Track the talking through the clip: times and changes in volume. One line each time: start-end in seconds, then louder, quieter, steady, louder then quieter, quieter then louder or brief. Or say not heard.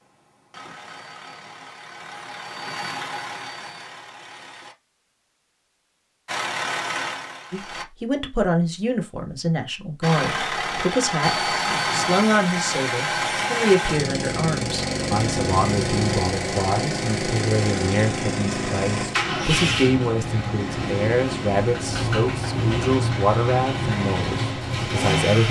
7.5-25.4 steady.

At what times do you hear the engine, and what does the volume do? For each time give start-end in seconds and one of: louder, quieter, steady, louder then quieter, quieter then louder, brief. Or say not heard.
0.0-4.8 louder then quieter
6.2-7.8 brief
10.0-25.4 steady.